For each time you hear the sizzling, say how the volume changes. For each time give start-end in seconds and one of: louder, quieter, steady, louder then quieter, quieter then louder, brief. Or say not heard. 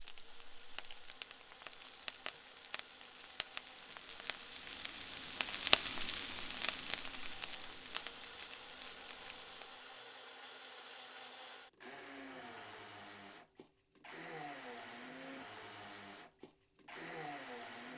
0.0-9.9 louder then quieter.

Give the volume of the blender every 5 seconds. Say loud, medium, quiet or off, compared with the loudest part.
medium, medium, loud, loud.